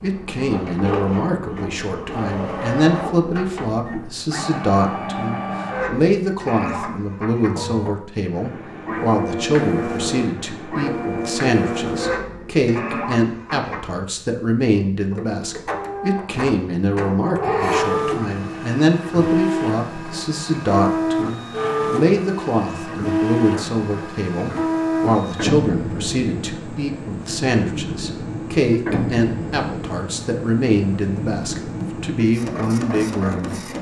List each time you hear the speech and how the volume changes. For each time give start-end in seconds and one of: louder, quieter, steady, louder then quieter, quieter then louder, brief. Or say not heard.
0.0-33.6 steady.